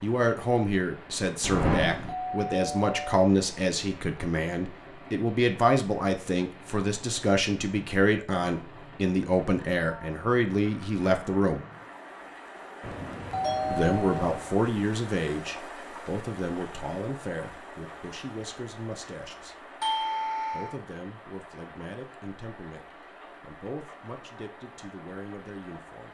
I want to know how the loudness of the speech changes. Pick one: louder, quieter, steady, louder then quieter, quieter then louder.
quieter.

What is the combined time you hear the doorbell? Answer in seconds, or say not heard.
4 s.